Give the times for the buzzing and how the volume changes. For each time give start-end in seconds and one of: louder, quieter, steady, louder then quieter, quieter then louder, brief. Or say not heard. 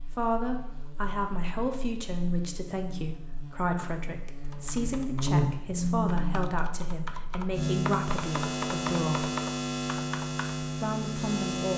0.0-11.7 louder.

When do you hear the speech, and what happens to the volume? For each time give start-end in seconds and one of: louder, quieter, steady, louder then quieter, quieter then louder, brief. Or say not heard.
0.0-9.3 steady
10.8-11.7 brief.